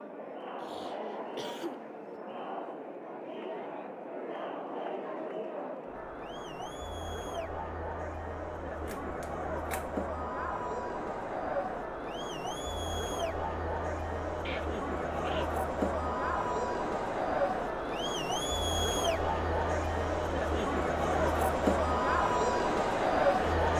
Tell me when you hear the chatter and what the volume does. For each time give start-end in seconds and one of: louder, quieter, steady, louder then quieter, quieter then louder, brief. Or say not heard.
0.0-23.7 louder.